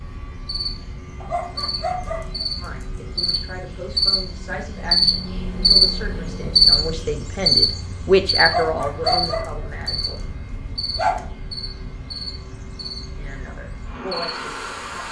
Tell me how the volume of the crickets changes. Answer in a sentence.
The loudness of the crickets goes up, then down.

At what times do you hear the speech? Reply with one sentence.
You can hear the speech from 2.5 to 10.2 s and from 13.2 to 15.0 s.